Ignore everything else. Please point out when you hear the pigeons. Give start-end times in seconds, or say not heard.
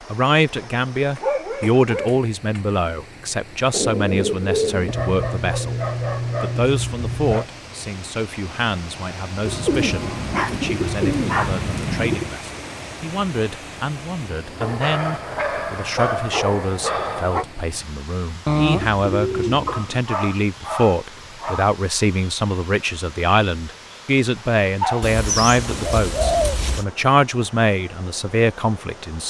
3.7-5.0, 9.4-12.3, 18.4-20.0, 25.0-26.9.